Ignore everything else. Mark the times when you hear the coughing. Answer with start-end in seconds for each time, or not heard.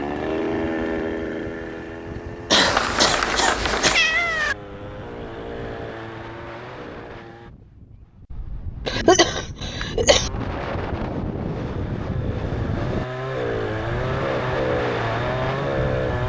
2.5-4.0, 8.8-10.3.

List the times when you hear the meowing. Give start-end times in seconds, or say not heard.
2.5-4.5.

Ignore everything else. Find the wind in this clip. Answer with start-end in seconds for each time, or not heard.
0.0-16.2.